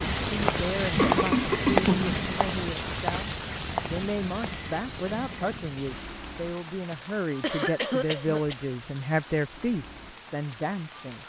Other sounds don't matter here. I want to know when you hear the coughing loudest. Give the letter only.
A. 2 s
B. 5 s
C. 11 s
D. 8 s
A.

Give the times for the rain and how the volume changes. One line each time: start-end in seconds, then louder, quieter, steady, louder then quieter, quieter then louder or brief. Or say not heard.
0.0-11.2 quieter.